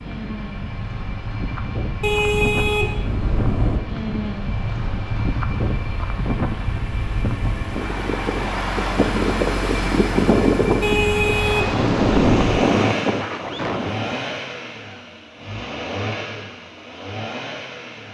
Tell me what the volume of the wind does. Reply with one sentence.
The volume of the wind goes up.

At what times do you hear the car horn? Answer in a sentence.
You can hear the car horn from 2.0 to 3.8 s and from 10.8 to 12.6 s.